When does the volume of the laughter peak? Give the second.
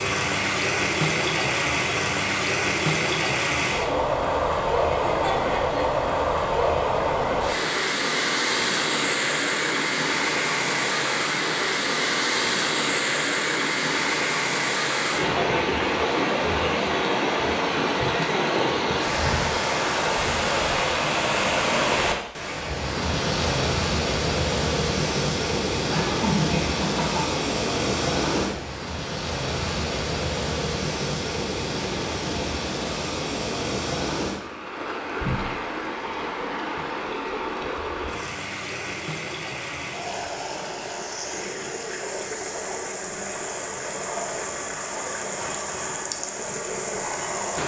26 s.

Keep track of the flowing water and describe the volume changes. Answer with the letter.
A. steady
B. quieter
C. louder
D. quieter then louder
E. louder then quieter
B.